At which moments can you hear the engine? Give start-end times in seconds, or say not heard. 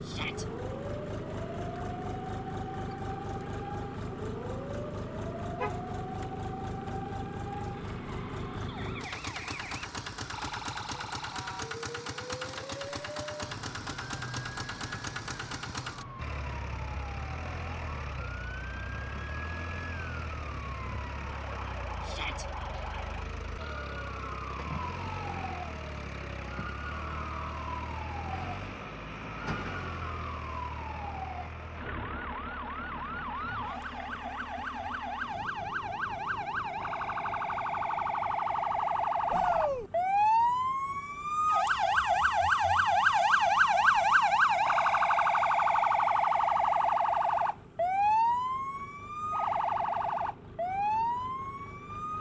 0.0-52.1.